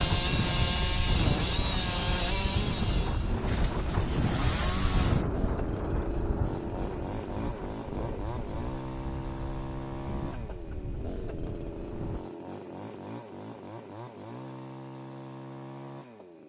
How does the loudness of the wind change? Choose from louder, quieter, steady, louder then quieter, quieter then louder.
quieter.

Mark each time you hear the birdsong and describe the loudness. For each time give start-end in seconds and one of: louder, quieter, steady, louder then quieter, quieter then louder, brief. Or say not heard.
not heard.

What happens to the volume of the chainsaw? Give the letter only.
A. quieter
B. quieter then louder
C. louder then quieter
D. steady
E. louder
A.